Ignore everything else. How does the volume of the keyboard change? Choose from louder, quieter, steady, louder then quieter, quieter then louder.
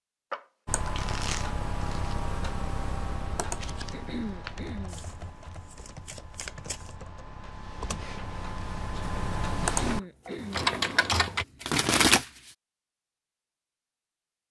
quieter then louder.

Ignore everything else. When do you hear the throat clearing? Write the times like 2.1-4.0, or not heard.
3.9-5.0, 9.6-10.7.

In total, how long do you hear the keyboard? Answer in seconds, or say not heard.
11 s.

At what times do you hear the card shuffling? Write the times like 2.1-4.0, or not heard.
0.3-2.2, 4.8-7.0, 9.8-10.8, 11.6-12.2.